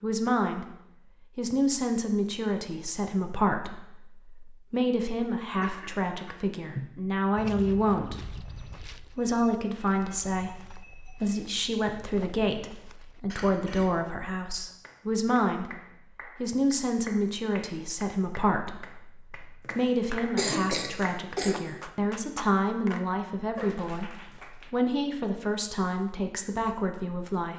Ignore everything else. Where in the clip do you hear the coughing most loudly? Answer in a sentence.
The volume of the coughing peaks at 21 seconds.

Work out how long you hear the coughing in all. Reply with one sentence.
You can hear the coughing for 4 seconds altogether.